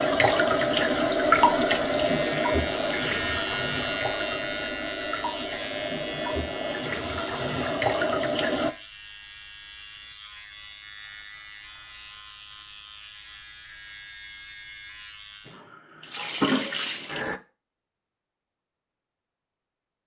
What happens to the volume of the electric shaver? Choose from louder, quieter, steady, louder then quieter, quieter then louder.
quieter.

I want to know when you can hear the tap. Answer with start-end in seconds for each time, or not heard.
0.0-8.8, 15.4-17.4.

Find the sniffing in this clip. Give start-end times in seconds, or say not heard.
not heard.